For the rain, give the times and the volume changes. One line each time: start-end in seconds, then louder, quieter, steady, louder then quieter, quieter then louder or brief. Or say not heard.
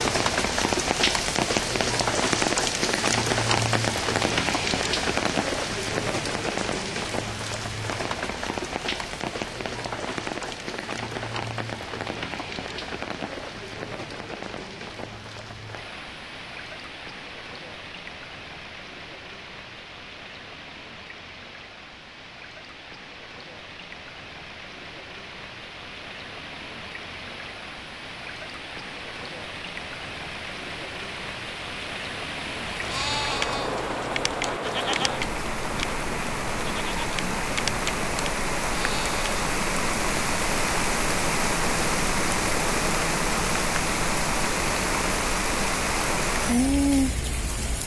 0.0-47.8 quieter then louder.